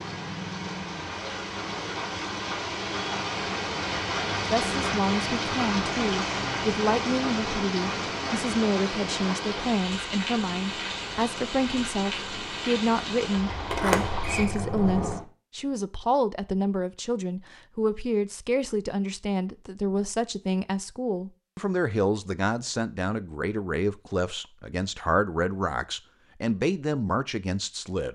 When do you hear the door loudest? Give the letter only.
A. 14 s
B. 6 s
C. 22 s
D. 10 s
A.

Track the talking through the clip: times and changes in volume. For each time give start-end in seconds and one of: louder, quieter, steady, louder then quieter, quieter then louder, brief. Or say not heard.
4.5-28.1 steady.